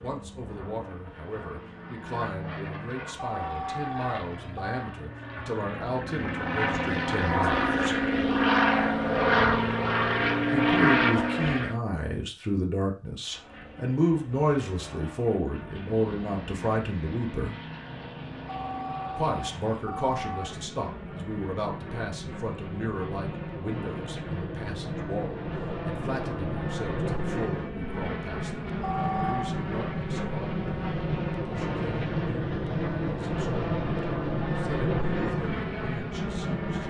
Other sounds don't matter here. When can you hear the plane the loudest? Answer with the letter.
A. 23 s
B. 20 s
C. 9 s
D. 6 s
C.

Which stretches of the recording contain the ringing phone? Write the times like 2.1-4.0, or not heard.
3.1-4.9, 18.4-20.4, 28.8-29.6.